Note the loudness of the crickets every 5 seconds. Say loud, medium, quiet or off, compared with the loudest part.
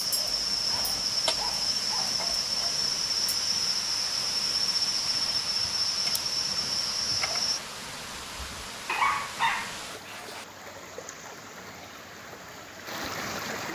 loud, loud, off.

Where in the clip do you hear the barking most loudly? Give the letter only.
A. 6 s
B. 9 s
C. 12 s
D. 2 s
B.